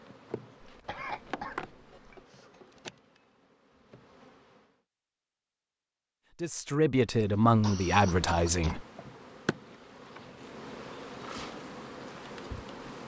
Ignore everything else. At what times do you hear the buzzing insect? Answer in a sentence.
The buzzing insect can be heard from 0.0 to 4.8 s and from 7.2 to 13.0 s.